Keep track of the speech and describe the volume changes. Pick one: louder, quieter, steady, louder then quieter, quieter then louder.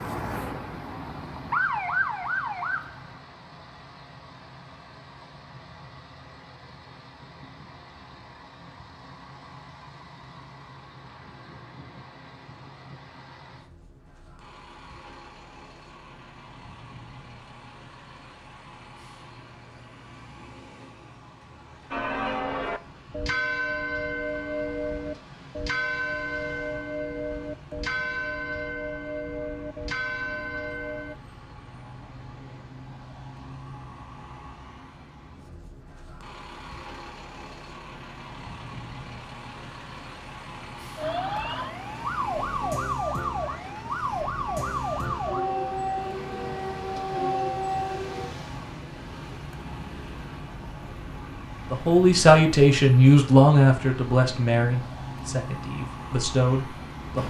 quieter then louder.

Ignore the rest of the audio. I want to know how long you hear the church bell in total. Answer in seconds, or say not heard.
9 s.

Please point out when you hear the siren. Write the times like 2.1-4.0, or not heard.
0.0-3.2, 41.0-48.4.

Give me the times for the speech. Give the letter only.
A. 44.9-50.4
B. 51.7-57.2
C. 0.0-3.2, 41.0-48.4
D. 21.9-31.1
B.